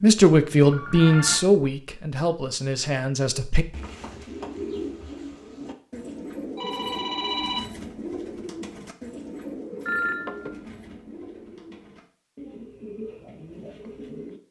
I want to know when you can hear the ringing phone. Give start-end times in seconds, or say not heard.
0.7-1.4, 6.5-7.7, 9.8-10.6.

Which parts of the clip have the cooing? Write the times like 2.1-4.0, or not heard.
2.8-14.4.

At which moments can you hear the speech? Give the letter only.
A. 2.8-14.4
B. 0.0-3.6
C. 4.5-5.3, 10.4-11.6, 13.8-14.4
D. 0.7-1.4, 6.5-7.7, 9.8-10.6
B.